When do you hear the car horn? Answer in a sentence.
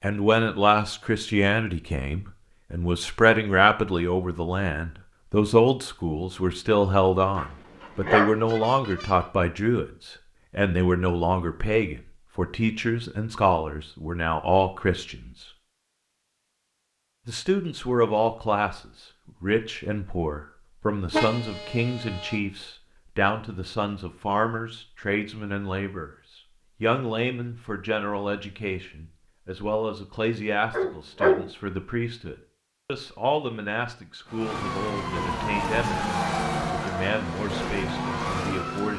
You can hear the car horn from 8.2 to 9.3 s and from 21.1 to 22.4 s.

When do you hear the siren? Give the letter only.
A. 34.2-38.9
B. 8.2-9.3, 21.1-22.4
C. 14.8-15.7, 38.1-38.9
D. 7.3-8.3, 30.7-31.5
A.